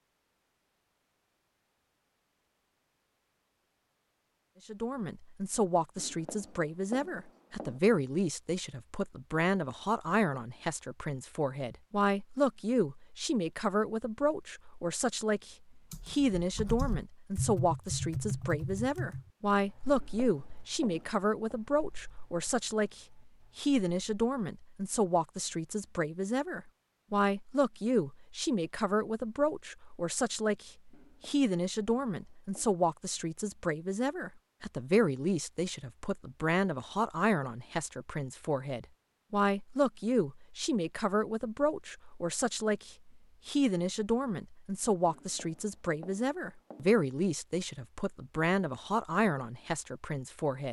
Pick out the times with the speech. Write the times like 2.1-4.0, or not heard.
4.7-50.6.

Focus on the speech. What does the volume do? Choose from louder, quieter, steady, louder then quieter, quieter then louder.
steady.